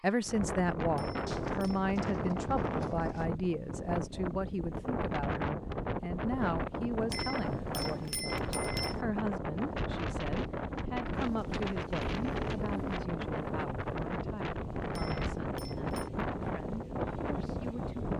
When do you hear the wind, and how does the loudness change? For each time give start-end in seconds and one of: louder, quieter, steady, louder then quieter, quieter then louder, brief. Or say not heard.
0.1-18.1 steady.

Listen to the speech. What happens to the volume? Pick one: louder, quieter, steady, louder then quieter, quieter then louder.
quieter.